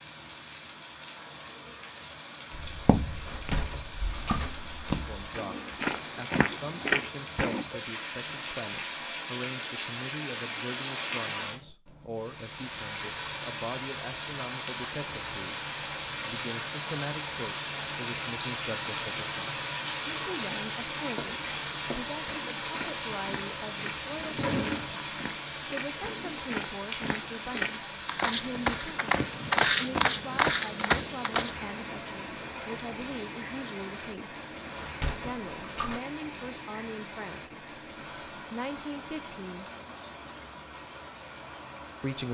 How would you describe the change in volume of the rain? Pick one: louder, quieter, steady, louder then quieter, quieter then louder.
louder then quieter.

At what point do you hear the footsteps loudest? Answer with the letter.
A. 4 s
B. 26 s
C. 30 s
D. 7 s
C.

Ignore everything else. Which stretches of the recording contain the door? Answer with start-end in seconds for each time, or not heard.
3.2-4.8, 23.8-24.9, 34.8-36.0.